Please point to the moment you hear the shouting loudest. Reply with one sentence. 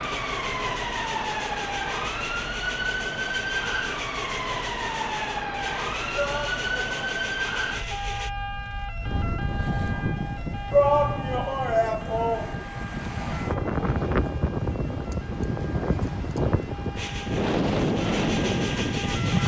The volume of the shouting peaks at 11 seconds.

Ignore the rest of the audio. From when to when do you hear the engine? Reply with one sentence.
The engine can be heard from 0.0 to 8.3 s and from 16.9 to 19.4 s.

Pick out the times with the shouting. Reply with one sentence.
You can hear the shouting from 6.2 to 7.2 s and from 10.7 to 12.7 s.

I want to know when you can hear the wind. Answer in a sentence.
You can hear the wind from 9.0 to 19.4 s.